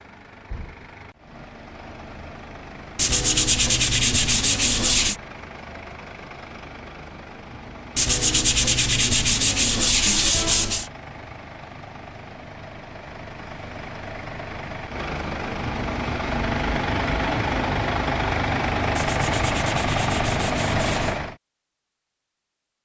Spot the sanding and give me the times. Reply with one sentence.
The sanding can be heard from 3.0 to 5.2 s, from 8.0 to 10.9 s and from 18.9 to 21.2 s.